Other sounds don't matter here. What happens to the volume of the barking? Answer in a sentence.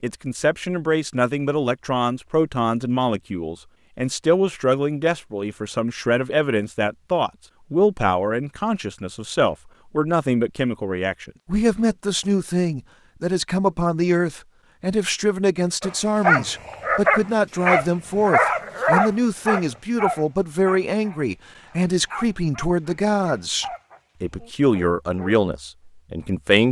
The loudness of the barking goes down.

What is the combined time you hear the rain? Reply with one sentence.
The rain can't be heard in this clip.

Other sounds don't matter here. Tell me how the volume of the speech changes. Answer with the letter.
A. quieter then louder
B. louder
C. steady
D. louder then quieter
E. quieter
C.